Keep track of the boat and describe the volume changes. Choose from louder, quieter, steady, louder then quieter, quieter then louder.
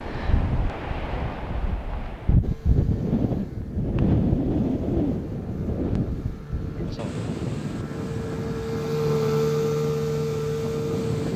louder.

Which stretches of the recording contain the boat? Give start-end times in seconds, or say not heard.
2.4-11.3.